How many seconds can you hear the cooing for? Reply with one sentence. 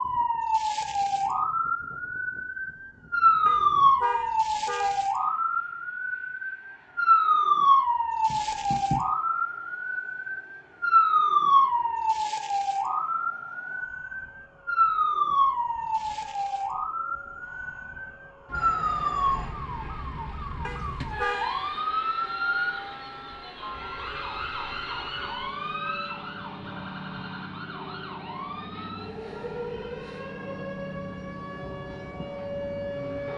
You can't hear the cooing here.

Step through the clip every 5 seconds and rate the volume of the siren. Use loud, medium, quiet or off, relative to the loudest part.
loud, loud, loud, loud, medium, quiet, quiet.